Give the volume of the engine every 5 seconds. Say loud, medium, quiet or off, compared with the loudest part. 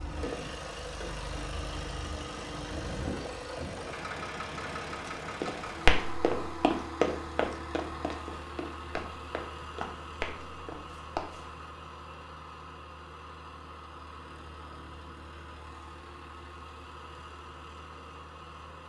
loud, loud, medium, medium.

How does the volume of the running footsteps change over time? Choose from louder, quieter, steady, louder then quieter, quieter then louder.
quieter.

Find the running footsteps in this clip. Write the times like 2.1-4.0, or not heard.
4.9-11.5.